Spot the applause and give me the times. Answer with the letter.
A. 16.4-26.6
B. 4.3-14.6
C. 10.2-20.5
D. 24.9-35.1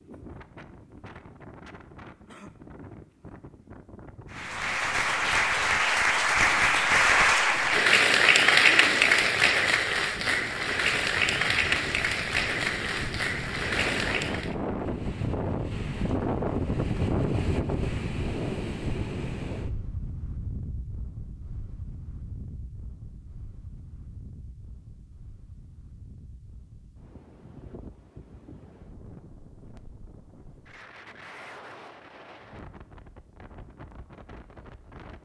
B.